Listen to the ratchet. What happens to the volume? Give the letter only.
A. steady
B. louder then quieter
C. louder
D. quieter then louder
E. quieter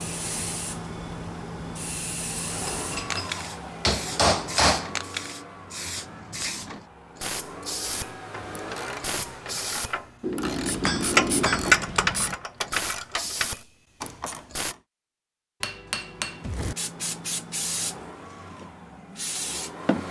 B.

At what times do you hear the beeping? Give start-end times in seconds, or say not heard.
not heard.